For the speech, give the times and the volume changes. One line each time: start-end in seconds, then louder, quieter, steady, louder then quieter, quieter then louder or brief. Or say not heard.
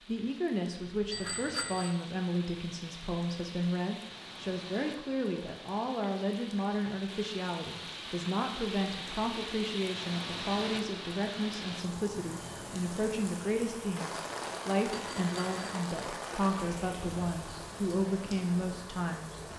0.1-19.4 steady.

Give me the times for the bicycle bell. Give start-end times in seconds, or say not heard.
1.1-1.9, 14.9-15.8.